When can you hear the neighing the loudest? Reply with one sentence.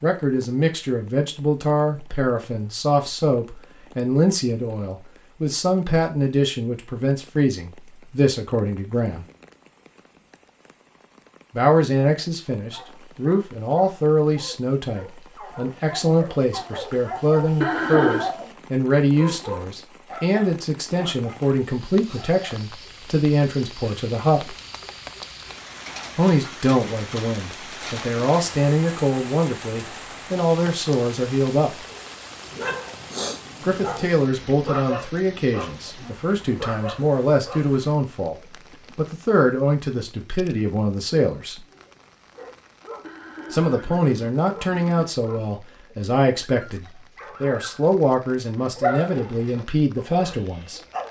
The volume of the neighing peaks at 18 seconds.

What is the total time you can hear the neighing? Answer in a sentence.
You can hear the neighing for 3 seconds altogether.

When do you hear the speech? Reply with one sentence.
The speech can be heard from 0.0 to 9.2 s, from 11.6 to 24.6 s, from 26.1 to 31.8 s, from 33.6 to 38.4 s, from 39.0 to 41.6 s and from 43.5 to 50.8 s.